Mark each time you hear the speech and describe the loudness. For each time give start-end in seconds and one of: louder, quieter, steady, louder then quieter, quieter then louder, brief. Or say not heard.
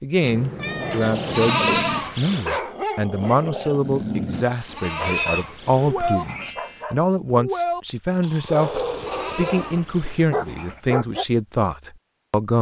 0.0-12.5 steady.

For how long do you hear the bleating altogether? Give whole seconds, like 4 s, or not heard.
6 s.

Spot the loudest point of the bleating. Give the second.
2 s.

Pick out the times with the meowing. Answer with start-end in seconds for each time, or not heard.
0.2-1.5, 5.0-6.6, 8.7-10.1.